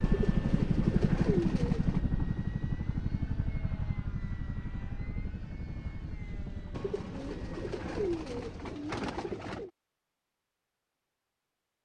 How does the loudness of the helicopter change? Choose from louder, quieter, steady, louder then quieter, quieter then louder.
quieter.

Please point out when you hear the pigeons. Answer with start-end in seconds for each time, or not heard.
0.0-2.0, 6.7-9.7.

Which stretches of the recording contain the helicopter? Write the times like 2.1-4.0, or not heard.
0.0-8.8.